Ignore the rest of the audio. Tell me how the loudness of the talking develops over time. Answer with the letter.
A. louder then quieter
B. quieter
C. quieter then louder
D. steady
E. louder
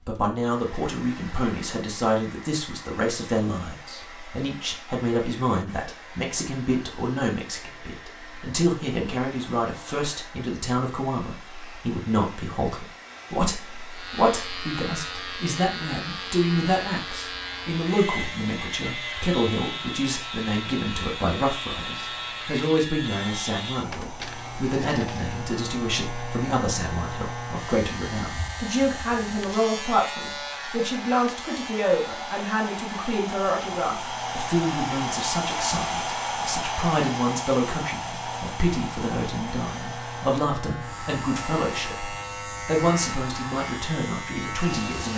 D.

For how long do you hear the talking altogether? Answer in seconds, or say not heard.
45 s.